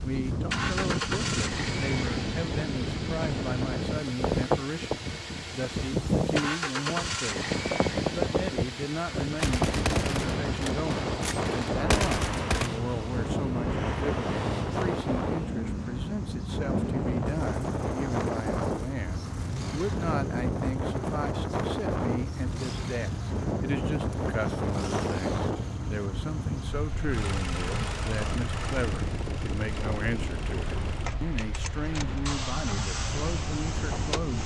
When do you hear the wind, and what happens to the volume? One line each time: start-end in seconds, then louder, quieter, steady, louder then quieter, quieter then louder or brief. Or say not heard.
0.0-34.4 quieter.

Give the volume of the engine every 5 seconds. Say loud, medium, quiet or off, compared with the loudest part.
loud, loud, loud, loud, medium, loud, loud.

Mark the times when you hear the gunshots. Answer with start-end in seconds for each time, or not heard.
9.3-12.7.